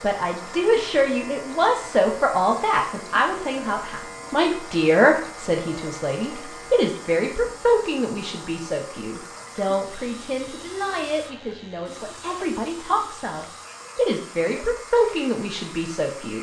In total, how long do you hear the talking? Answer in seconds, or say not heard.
16 s.